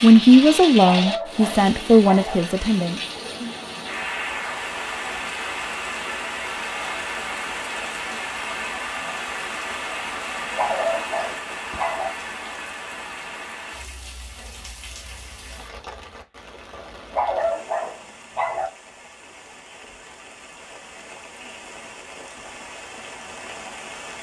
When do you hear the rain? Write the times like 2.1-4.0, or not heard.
0.0-24.1.